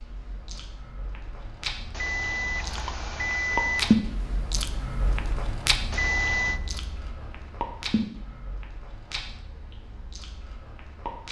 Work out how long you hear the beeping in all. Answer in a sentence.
The beeping can be heard for 3 seconds in total.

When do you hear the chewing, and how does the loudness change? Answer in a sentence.
The chewing can be heard from 0.0 to 11.2 s, getting louder then quieter.